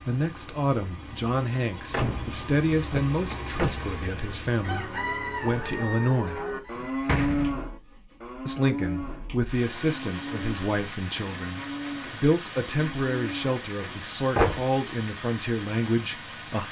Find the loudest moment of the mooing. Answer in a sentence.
The loudest moment of the mooing is at 7 seconds.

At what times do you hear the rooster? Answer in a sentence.
The rooster can be heard from 4.6 to 7.2 s.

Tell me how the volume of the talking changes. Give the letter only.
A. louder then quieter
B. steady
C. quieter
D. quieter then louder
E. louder
B.